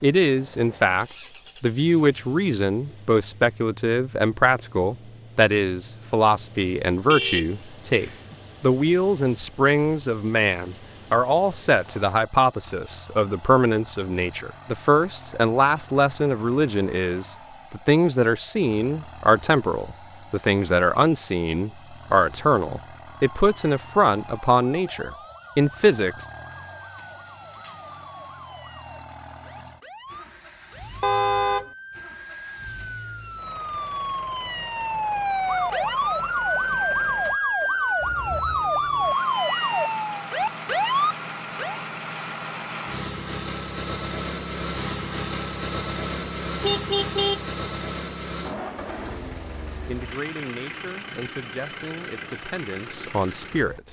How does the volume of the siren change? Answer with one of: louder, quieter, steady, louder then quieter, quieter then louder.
louder.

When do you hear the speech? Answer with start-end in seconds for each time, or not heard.
0.0-26.2, 49.9-53.8.